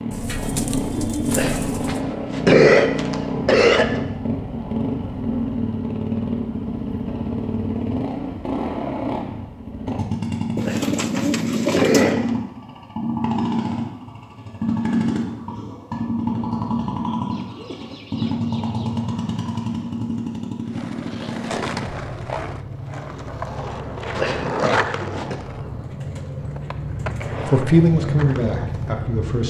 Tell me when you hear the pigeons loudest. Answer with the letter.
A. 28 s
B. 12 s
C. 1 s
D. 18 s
B.